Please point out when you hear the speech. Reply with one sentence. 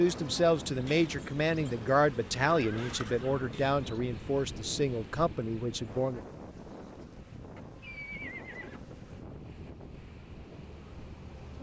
You can hear the speech from 0.0 to 6.2 s.